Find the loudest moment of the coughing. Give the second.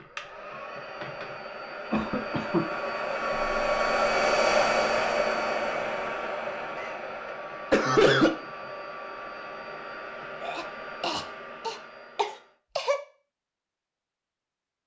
8 s.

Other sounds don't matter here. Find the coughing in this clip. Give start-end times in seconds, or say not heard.
1.9-2.6, 6.8-8.3, 10.4-13.0.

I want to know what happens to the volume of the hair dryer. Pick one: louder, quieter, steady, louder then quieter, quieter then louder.
louder then quieter.